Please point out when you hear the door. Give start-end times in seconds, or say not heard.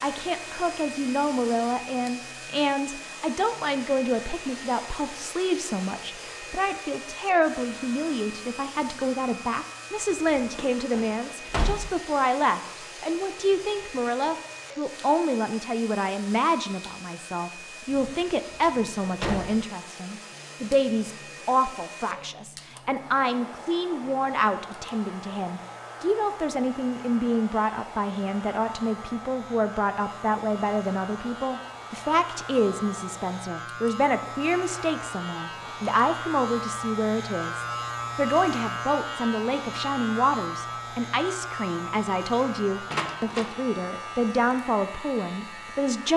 10.6-11.9, 17.9-19.5, 42.9-43.5.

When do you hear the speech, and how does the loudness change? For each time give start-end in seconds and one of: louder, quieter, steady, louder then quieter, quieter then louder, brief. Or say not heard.
0.0-46.1 steady.